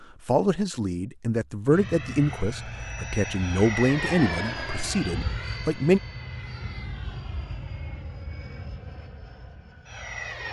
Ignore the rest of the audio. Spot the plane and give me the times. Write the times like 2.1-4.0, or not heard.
1.7-10.4.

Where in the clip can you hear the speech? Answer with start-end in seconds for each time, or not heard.
0.0-6.0.